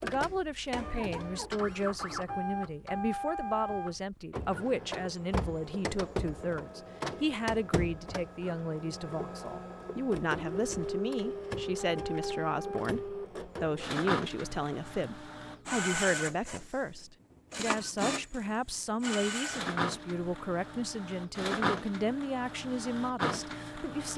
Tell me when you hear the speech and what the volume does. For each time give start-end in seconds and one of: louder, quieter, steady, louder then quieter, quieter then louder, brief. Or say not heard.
0.0-24.1 steady.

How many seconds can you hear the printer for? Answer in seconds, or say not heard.
24 s.